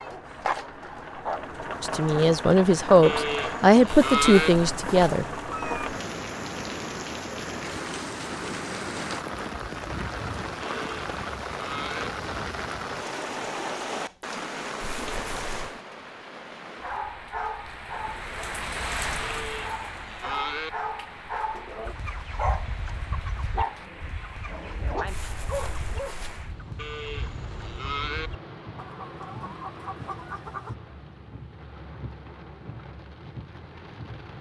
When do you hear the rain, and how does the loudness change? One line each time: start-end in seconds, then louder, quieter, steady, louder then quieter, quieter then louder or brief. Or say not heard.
0.0-34.3 quieter.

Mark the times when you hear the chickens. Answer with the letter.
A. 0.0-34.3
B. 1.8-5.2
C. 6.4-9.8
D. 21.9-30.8
D.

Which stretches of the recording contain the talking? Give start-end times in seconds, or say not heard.
1.8-5.2.